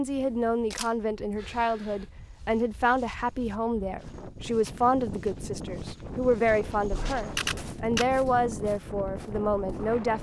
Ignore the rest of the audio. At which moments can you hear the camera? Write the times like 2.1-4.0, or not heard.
0.1-2.0, 7.2-8.2.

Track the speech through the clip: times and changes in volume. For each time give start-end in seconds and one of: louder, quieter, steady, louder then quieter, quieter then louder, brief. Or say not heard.
0.0-10.1 steady.